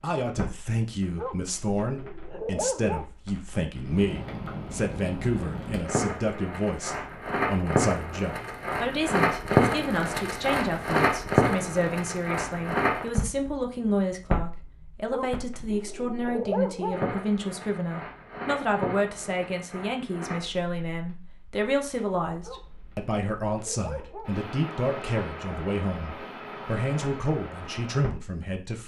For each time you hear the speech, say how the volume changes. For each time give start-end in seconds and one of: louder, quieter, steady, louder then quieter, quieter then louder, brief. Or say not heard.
0.0-28.8 steady.